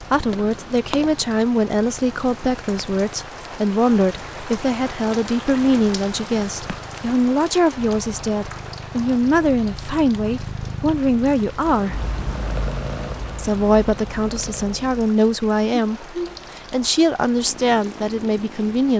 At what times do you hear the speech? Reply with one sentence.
The speech can be heard from 0.0 to 12.0 s and from 13.3 to 18.9 s.